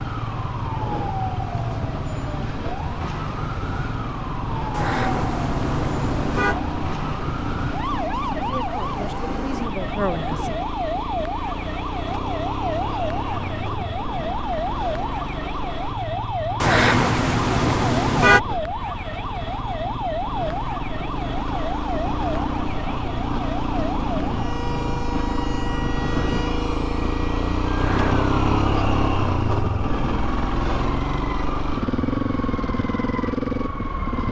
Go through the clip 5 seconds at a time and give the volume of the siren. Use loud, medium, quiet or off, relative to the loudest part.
loud, loud, loud, loud, loud, medium, medium.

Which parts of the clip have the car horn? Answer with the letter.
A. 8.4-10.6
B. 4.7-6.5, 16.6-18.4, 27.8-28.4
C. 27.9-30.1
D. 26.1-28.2
B.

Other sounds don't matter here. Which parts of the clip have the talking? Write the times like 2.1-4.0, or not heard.
8.4-10.6.